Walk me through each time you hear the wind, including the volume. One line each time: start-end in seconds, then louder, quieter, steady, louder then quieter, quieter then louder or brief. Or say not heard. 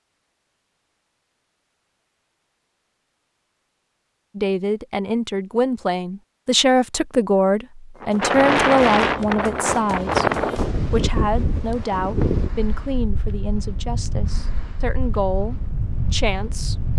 8.0-16.9 quieter.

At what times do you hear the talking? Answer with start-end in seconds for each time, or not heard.
4.3-16.8.